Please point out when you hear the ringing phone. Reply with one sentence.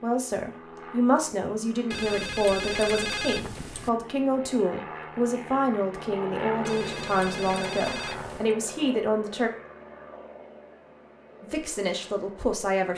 You can hear the ringing phone from 1.9 to 3.9 s and from 6.7 to 8.6 s.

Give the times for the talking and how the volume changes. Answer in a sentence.
You can hear the talking from 0.0 to 9.5 s, at a steady volume; and briefly from 11.4 to 12.9 s.